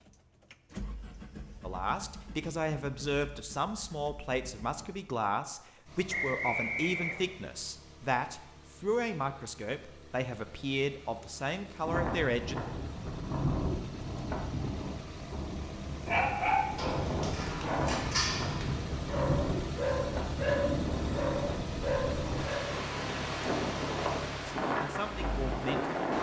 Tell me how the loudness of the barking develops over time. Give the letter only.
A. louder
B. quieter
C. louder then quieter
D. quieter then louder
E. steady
E.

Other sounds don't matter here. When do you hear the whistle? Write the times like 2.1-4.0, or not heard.
6.1-7.3.